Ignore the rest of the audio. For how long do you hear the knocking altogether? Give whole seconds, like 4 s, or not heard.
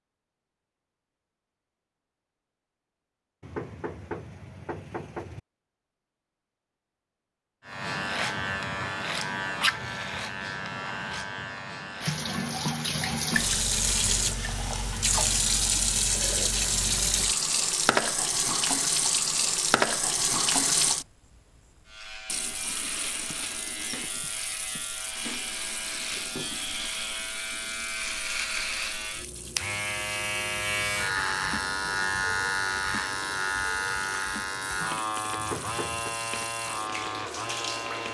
3 s.